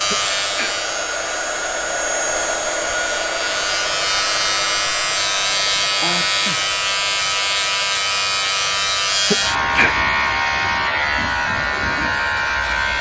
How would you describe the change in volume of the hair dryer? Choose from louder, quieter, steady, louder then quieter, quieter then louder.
quieter.